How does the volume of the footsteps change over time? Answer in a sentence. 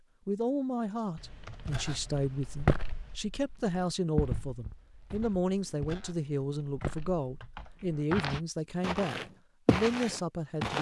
The loudness of the footsteps goes down, then up.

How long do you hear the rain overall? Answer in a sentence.
The rain can't be heard in this clip.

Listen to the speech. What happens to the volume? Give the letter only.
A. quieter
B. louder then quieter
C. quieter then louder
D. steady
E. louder
D.